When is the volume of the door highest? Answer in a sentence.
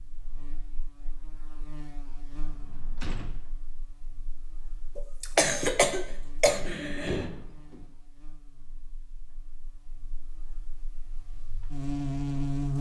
The loudest moment of the door is at 7 seconds.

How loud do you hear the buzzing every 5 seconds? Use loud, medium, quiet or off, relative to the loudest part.
quiet, quiet, loud.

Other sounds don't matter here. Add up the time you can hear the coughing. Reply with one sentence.
You can hear the coughing for 2 seconds altogether.